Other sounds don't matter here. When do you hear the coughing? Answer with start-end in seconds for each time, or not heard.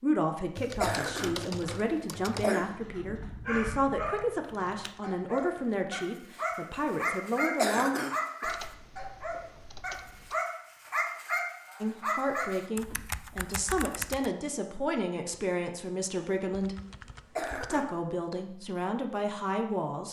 0.8-2.6, 7.5-8.6, 17.4-17.9.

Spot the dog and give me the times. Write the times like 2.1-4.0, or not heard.
2.6-13.0.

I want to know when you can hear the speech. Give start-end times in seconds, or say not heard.
0.0-8.0, 11.8-16.8, 17.6-20.0.